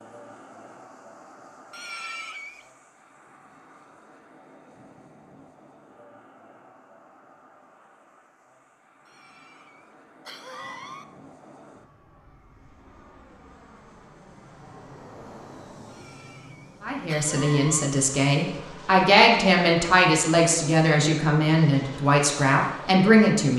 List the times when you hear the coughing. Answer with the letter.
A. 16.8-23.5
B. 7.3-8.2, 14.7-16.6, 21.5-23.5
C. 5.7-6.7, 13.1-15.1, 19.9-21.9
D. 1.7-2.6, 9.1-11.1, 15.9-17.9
D.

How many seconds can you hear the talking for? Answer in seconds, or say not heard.
7 s.